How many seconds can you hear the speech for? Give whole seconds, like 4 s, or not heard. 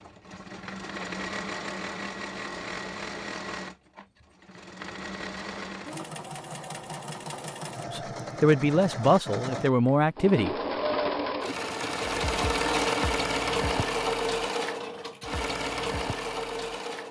3 s.